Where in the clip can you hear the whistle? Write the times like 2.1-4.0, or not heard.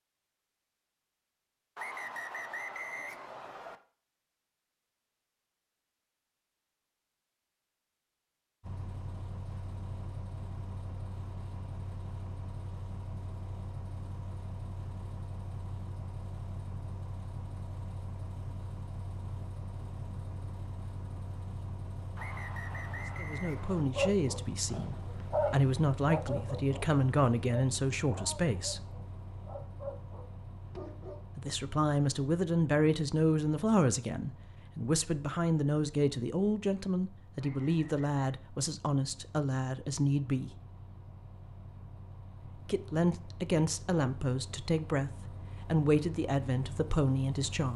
1.8-3.8, 22.1-23.9, 37.4-38.2.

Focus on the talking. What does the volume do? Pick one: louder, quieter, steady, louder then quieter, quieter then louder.
steady.